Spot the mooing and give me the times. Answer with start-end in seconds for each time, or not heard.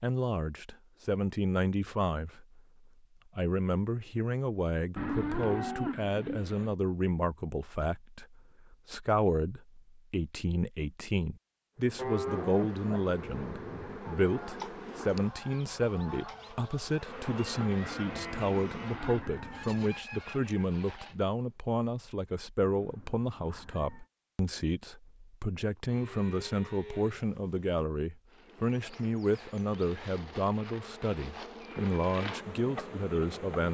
5.0-6.8, 11.9-14.0, 17.8-19.7, 25.9-27.7.